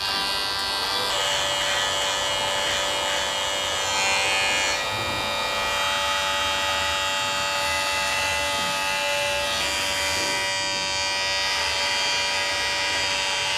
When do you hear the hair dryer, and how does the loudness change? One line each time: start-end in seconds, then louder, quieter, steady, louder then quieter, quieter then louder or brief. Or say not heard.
0.0-13.5 steady.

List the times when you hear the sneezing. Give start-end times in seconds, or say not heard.
not heard.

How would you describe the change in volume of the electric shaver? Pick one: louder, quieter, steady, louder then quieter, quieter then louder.
steady.